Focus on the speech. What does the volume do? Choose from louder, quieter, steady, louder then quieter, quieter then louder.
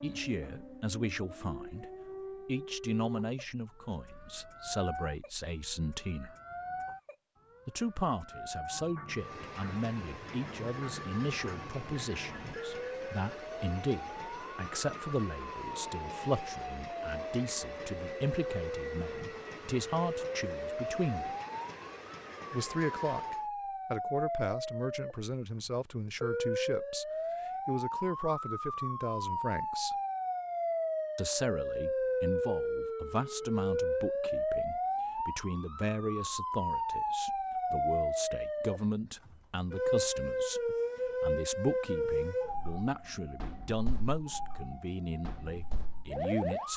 steady.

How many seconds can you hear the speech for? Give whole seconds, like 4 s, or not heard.
43 s.